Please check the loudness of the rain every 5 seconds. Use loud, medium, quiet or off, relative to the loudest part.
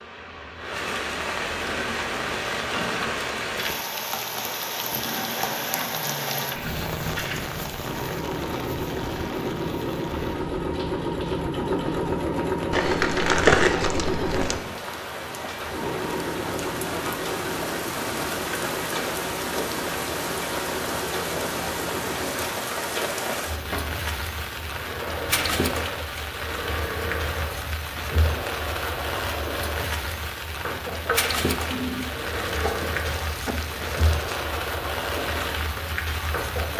loud, loud, medium, loud, loud, loud, loud, loud.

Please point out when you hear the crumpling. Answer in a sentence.
The crumpling can be heard from 12.7 to 14.6 s and from 31.7 to 34.5 s.